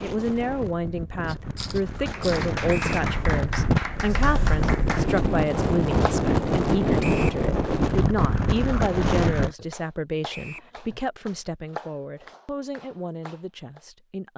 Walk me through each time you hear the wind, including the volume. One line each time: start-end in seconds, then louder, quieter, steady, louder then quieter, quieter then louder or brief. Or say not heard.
0.0-9.6 louder.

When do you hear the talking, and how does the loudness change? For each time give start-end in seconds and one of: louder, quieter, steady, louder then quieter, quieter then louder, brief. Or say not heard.
0.0-14.3 quieter.